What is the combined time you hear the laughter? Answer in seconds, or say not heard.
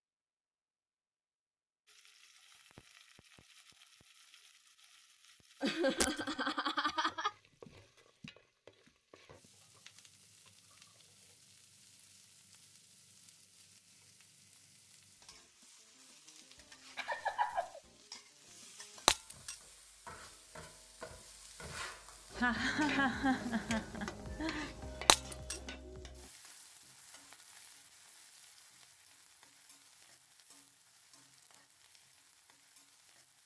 5 s.